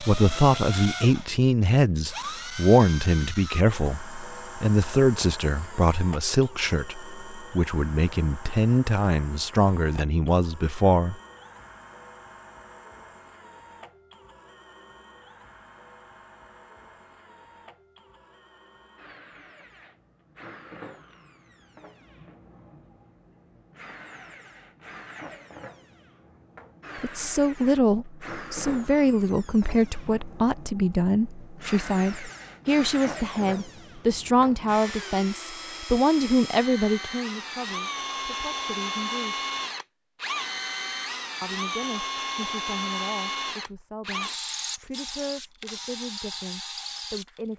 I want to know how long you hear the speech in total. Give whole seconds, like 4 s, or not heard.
30 s.